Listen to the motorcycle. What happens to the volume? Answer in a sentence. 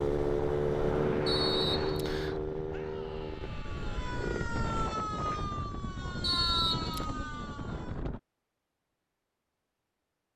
The volume of the motorcycle goes down.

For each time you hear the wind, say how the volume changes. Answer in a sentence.
You can hear the wind from 0.2 to 8.2 s, getting quieter then louder.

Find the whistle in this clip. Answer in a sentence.
The whistle can be heard from 1.2 to 2.4 s and from 6.2 to 7.0 s.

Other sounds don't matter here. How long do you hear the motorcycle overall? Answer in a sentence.
The motorcycle can be heard for 5 seconds in total.